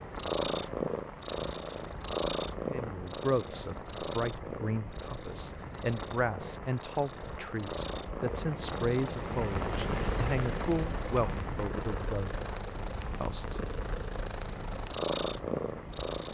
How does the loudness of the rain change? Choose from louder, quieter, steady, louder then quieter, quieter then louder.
louder then quieter.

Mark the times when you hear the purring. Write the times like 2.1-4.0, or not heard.
0.0-16.3.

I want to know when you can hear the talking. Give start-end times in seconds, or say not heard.
2.7-12.3, 13.2-13.6.